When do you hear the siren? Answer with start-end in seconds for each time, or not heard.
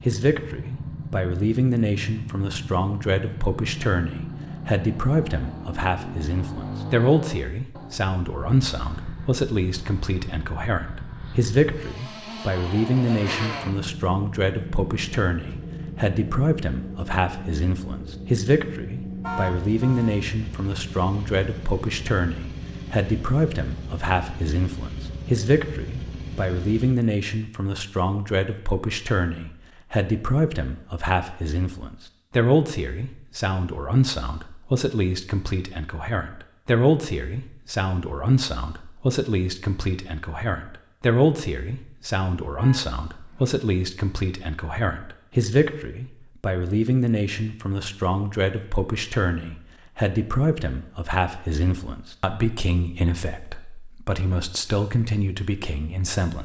not heard.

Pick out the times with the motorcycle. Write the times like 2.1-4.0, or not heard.
0.0-27.1.